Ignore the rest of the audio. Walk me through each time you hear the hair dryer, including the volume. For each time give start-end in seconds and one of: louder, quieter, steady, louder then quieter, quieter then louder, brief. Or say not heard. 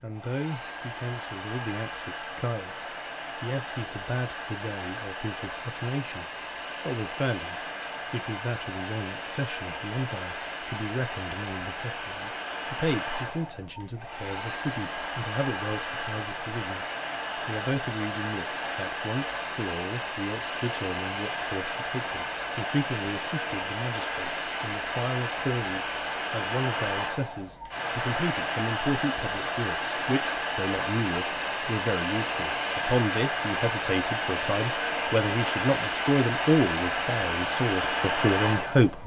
0.0-39.0 louder.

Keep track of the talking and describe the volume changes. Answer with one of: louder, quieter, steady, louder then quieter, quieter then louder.
louder.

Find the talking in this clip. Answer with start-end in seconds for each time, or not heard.
0.0-6.2, 6.8-39.0.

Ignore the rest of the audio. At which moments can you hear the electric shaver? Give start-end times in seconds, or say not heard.
not heard.